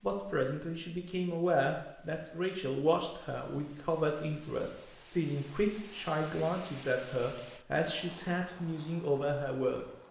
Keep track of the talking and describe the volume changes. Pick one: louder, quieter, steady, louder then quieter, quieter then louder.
steady.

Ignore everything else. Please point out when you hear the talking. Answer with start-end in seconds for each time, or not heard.
0.0-9.8.